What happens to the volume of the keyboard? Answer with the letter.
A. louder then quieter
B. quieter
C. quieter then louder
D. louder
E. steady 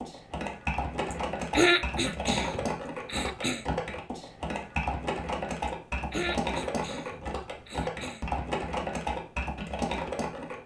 E.